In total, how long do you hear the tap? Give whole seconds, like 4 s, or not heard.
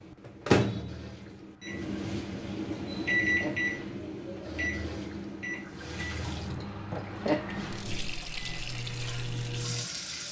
10 s.